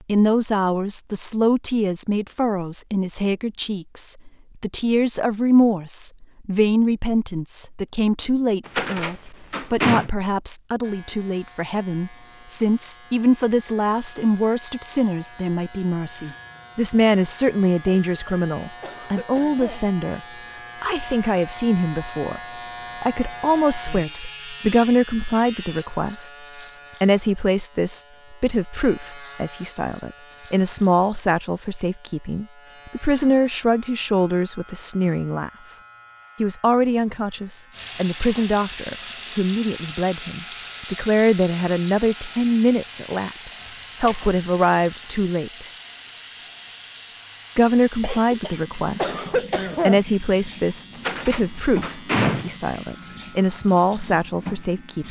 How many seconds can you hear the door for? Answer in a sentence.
The door can be heard for 3 seconds in total.